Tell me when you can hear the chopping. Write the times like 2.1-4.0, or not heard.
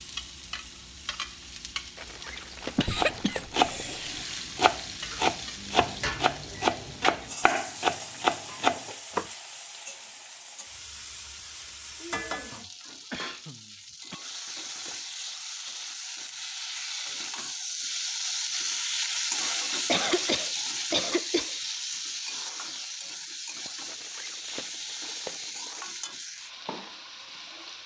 3.0-9.2.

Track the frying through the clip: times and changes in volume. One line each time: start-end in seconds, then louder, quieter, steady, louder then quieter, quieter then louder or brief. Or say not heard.
0.0-27.8 louder then quieter.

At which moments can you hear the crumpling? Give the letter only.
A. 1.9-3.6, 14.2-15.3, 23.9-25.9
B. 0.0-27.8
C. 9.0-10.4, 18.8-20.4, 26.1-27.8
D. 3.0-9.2
A.